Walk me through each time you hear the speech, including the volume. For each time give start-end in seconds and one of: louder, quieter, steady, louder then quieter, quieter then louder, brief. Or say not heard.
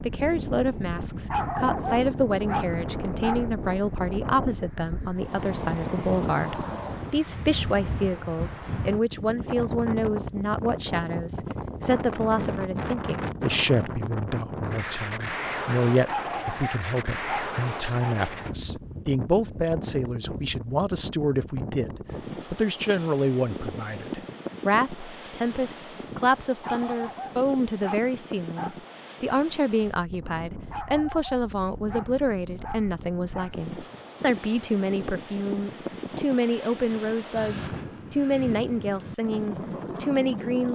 0.1-40.7 steady.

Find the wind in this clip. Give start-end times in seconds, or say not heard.
0.0-40.7.